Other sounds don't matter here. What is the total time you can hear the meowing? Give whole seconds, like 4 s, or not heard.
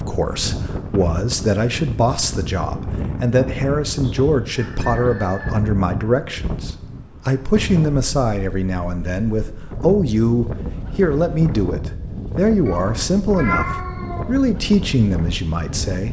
2 s.